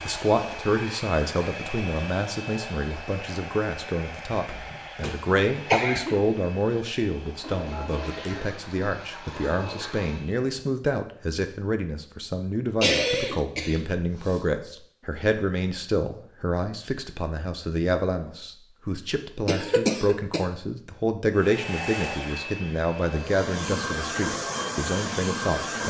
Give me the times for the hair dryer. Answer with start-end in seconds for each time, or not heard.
0.0-10.8, 21.4-25.8.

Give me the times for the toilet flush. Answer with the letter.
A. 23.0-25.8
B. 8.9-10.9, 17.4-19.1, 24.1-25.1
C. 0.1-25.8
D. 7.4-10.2
D.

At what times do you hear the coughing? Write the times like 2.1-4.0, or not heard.
4.3-6.2, 12.8-14.4, 19.4-20.4.